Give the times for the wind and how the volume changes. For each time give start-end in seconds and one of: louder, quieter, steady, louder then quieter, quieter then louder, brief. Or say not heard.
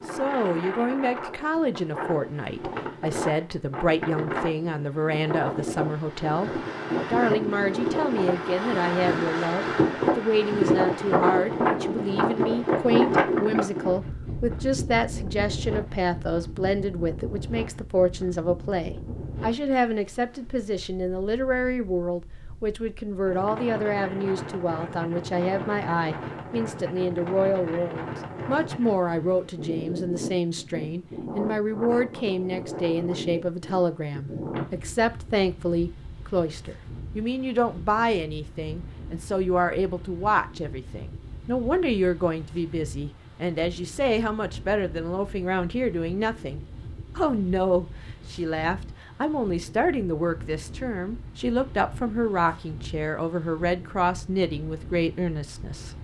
0.0-55.9 quieter.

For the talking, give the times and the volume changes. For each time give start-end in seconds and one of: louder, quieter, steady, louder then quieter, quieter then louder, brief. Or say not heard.
0.1-55.9 steady.